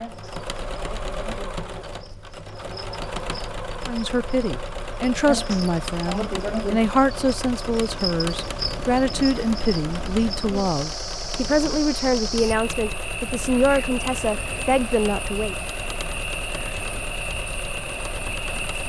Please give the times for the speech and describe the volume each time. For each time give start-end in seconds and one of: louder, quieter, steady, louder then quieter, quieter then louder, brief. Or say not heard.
3.9-15.6 steady.